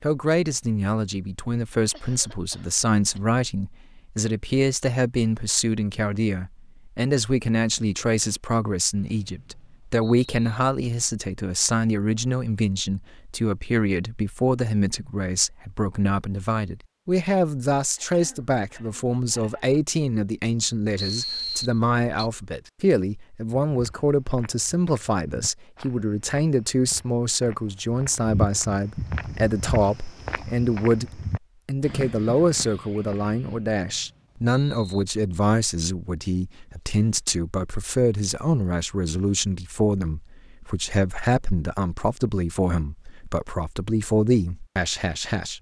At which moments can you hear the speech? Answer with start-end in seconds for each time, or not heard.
0.0-45.5.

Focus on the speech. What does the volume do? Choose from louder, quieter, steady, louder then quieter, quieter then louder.
steady.